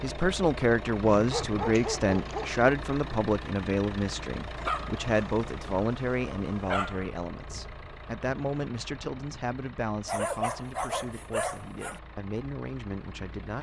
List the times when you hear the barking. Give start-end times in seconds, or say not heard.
1.1-2.6, 4.5-7.0, 10.1-12.0.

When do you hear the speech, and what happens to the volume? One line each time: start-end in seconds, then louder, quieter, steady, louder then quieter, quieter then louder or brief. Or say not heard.
0.0-13.5 quieter.